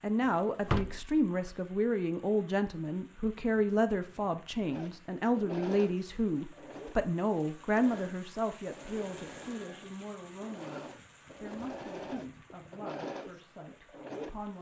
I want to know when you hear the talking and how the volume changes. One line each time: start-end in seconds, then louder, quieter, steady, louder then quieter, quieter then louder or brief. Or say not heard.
0.0-14.5 quieter.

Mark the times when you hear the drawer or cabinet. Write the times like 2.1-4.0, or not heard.
0.2-1.1.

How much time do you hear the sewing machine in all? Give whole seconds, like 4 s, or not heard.
10 s.